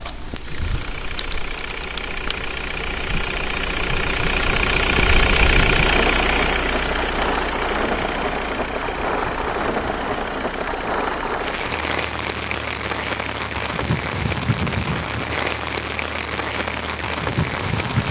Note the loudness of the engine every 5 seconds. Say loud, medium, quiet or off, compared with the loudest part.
loud, loud, quiet, quiet.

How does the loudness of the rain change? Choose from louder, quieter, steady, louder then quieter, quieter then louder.
louder.